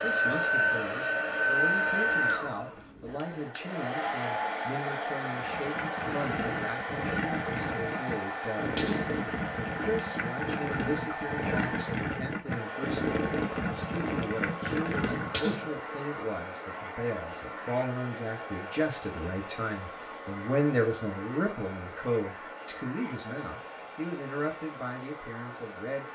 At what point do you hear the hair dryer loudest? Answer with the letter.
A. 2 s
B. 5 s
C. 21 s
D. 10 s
A.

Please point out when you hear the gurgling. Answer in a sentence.
You can hear the gurgling from 5.3 to 15.5 s.